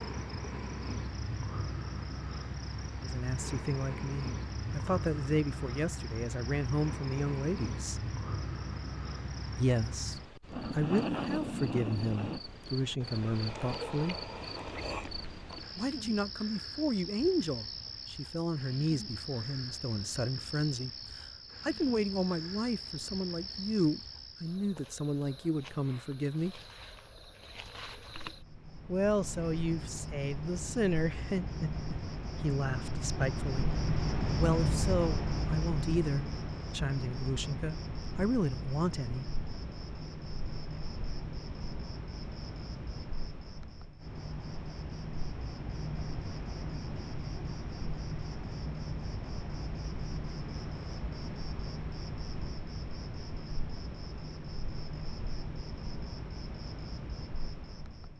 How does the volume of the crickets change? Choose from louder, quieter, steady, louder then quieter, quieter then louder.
steady.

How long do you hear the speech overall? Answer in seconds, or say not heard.
30 s.